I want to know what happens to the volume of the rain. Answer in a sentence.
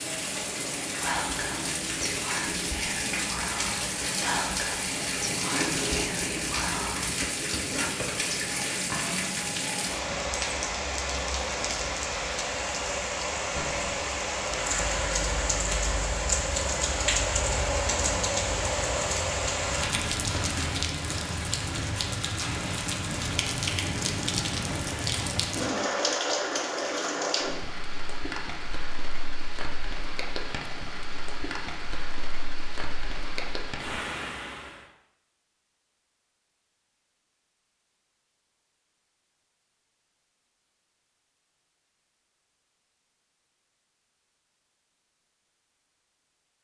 The volume of the rain goes down.